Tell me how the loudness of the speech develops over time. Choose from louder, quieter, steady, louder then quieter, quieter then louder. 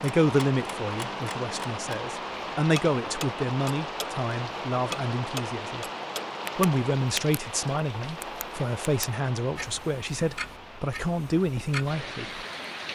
steady.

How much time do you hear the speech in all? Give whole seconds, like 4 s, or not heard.
12 s.